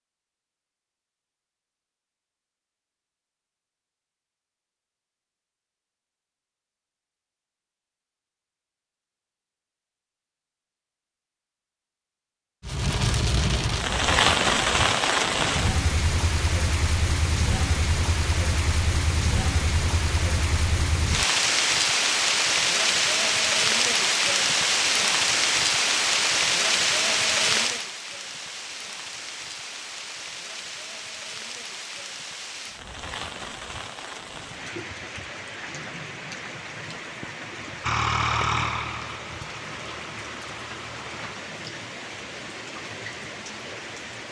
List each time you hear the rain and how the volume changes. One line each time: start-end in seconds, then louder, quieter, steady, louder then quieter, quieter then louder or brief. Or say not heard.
12.6-44.2 quieter.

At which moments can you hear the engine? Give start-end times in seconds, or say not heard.
37.8-41.4.